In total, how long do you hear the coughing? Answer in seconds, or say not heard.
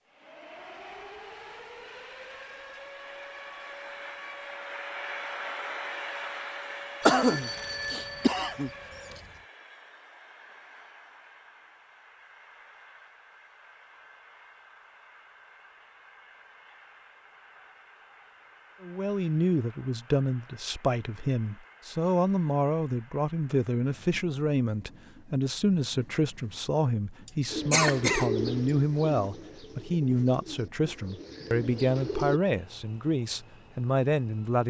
3 s.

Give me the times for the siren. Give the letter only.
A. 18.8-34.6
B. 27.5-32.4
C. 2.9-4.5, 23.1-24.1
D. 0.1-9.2
D.